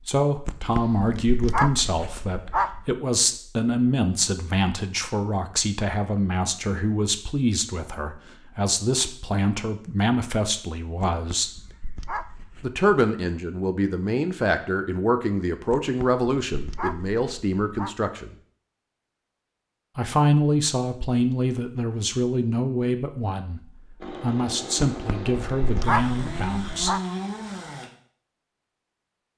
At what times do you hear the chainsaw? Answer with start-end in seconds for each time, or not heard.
24.0-27.9.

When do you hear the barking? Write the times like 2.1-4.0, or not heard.
0.5-3.0, 11.0-12.8, 15.7-17.9, 24.9-27.0.